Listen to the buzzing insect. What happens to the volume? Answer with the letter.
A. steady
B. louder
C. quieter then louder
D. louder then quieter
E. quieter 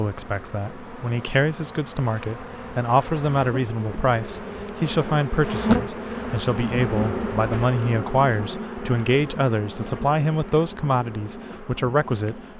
D.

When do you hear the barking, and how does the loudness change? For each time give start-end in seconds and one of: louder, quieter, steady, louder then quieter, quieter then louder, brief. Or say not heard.
not heard.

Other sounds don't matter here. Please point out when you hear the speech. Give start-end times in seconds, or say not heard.
0.0-12.5.